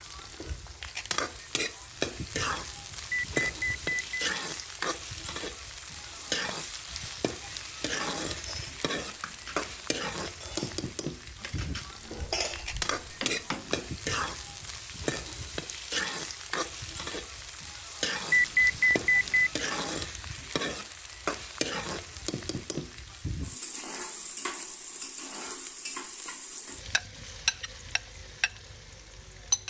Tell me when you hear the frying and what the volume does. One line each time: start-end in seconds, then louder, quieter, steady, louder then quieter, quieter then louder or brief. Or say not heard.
0.0-29.6 steady.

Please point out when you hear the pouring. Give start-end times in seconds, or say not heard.
not heard.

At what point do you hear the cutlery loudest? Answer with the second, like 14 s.
12 s.